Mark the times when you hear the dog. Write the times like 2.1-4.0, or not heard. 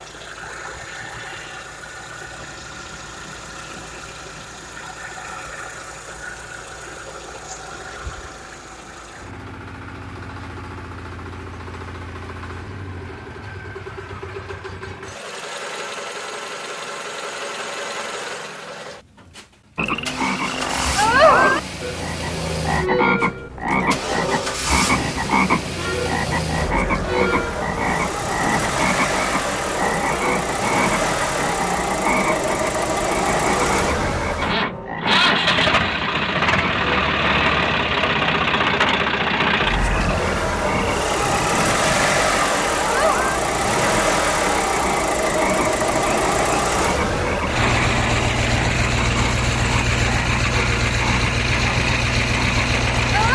not heard.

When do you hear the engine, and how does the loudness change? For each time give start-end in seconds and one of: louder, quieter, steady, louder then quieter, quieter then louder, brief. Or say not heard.
0.0-53.3 louder.